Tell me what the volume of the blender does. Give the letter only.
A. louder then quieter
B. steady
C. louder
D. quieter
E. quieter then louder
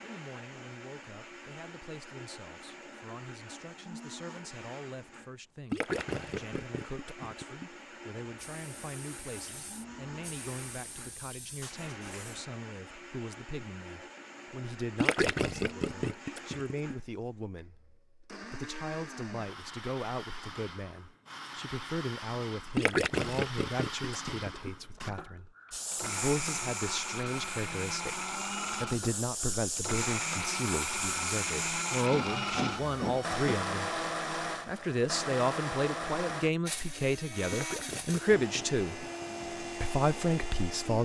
C.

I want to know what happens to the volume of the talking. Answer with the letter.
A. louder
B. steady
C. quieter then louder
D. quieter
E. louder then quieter
A.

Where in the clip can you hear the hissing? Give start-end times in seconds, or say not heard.
8.3-12.4, 25.7-33.5.